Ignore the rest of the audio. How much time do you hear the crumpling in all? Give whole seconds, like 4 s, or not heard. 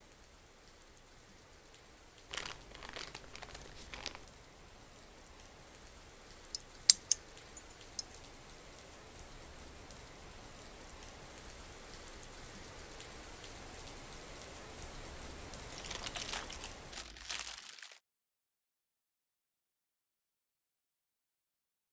4 s.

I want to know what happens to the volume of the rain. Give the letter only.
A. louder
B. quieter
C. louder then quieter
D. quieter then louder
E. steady
A.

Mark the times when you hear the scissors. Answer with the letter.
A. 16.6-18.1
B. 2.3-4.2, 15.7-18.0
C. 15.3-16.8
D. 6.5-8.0
D.